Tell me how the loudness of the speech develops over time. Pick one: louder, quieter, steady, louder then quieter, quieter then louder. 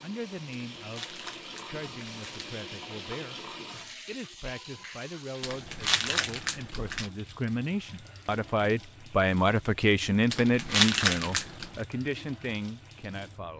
louder then quieter.